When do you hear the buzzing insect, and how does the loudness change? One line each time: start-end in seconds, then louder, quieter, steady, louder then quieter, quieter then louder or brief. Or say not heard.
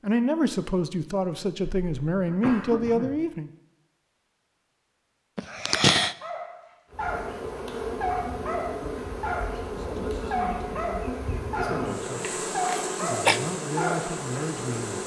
6.9-15.0 steady.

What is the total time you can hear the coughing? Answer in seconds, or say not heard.
3 s.